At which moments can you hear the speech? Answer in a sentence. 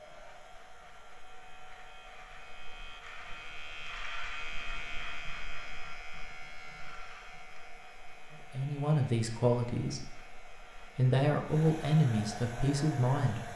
The speech can be heard from 8.5 to 13.5 s.